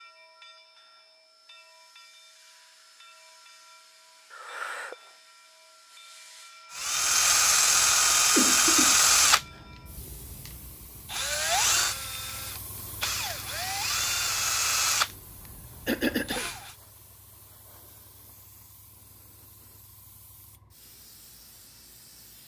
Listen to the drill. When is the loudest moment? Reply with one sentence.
The volume of the drill peaks at 9 seconds.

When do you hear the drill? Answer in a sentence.
The drill can be heard from 6.8 to 16.7 s.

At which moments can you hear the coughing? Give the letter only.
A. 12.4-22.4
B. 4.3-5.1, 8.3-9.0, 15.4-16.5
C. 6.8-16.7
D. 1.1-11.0
B.